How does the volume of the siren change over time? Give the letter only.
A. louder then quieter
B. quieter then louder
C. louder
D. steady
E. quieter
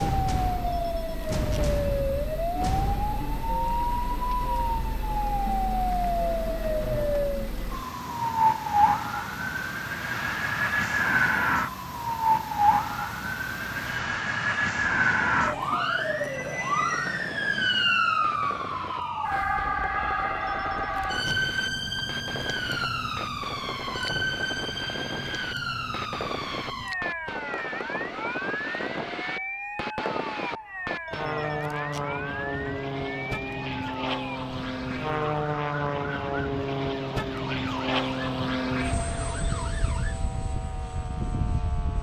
E.